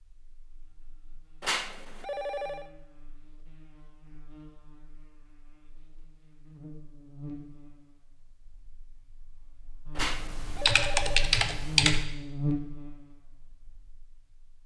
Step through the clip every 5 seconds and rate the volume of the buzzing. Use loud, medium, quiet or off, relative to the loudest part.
quiet, quiet, loud.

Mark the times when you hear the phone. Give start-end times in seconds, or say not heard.
1.4-2.7, 9.9-11.4.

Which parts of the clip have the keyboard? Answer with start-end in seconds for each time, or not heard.
9.9-12.1.